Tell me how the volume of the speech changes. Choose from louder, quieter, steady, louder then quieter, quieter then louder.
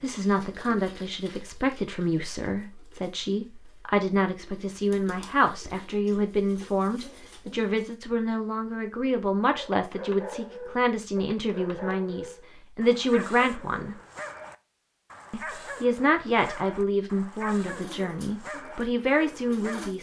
steady.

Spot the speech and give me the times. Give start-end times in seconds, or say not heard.
0.0-13.9, 15.3-19.9.